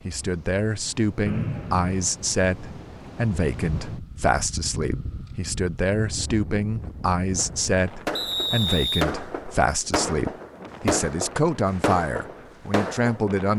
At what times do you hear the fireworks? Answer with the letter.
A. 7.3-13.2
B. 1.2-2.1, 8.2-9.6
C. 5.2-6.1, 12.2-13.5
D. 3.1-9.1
A.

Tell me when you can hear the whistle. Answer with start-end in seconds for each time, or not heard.
1.2-2.1, 8.2-9.6.